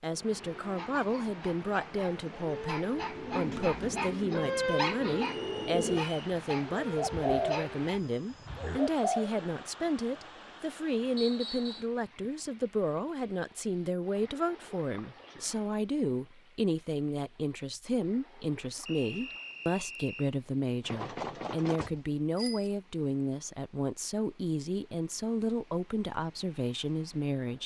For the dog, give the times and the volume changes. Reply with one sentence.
The dog can be heard from 0.5 to 7.8 s, getting louder then quieter.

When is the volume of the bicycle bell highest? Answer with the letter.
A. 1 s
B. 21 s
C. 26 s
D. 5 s
B.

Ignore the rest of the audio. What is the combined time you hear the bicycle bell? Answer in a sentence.
You can hear the bicycle bell for 2 seconds altogether.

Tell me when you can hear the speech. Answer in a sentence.
You can hear the speech from 0.0 to 27.6 s.